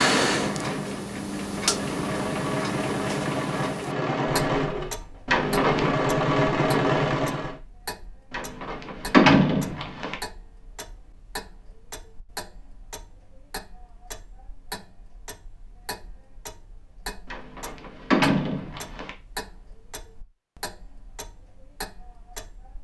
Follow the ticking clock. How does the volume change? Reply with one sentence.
The loudness of the ticking clock goes down.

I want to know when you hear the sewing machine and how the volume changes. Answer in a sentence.
You can hear the sewing machine from 0.1 to 7.5 s, getting louder.